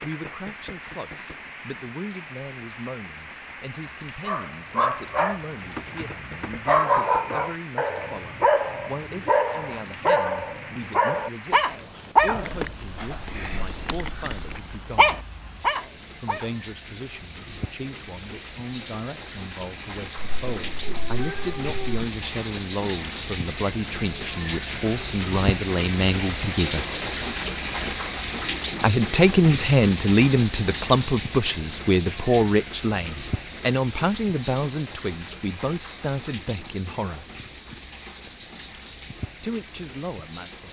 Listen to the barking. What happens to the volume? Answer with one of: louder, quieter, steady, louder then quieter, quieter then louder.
steady.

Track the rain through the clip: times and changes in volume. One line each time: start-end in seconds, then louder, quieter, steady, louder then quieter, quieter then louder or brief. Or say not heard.
0.0-40.6 louder then quieter.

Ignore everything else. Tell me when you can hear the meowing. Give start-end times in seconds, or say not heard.
20.1-22.1.